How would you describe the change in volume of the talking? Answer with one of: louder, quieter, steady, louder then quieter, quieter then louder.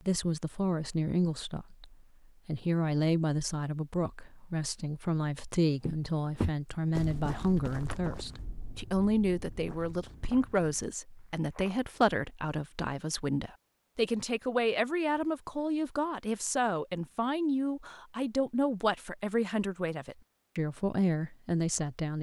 steady.